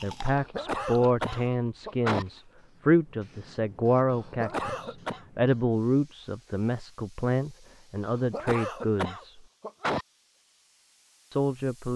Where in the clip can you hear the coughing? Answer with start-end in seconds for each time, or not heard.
0.3-2.2, 4.1-5.2, 8.1-10.1.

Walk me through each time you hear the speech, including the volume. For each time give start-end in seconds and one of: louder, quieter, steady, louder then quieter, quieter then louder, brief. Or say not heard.
0.0-9.4 steady
11.3-11.9 brief.